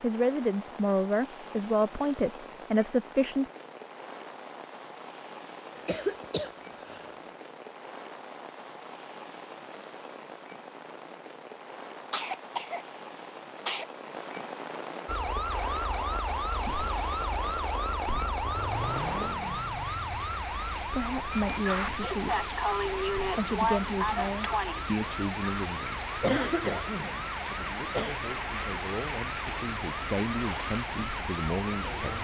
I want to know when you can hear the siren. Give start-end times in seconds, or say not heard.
15.1-32.2.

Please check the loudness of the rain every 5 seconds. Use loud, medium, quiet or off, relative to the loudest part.
medium, medium, medium, loud, loud, loud, loud.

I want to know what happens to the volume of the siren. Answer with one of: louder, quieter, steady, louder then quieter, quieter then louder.
quieter.